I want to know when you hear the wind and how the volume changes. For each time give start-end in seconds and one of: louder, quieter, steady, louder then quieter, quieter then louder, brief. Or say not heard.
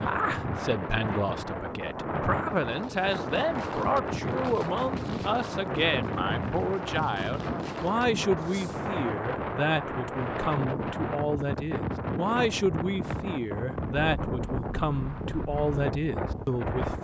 0.0-16.9 steady.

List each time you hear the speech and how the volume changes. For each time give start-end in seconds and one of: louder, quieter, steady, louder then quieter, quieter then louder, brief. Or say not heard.
0.0-16.9 steady.